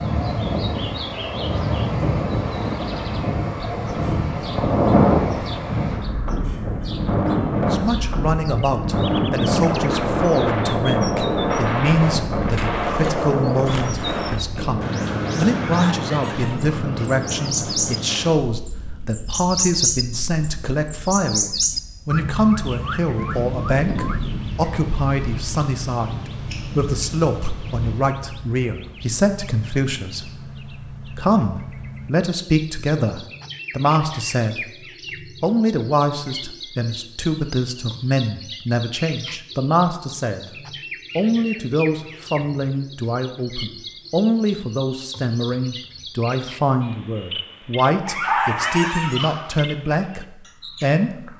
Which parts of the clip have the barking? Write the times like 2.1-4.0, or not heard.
15.7-17.5, 48.0-49.5.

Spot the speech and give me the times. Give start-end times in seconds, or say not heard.
7.7-40.5, 41.1-51.3.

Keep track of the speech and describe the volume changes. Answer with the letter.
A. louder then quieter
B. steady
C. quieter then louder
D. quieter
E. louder
B.